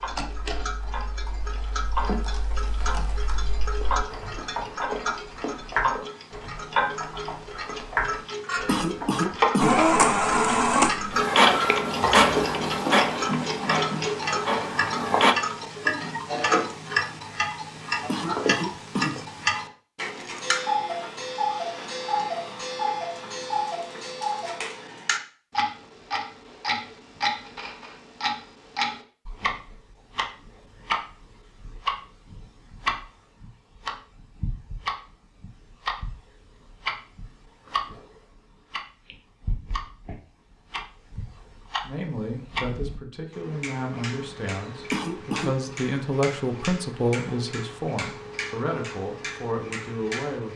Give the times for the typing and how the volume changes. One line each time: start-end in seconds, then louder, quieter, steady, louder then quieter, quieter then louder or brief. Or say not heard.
0.2-9.6 louder.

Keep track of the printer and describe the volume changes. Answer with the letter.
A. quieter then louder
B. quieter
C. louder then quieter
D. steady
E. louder
B.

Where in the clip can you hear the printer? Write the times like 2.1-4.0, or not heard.
9.6-15.3.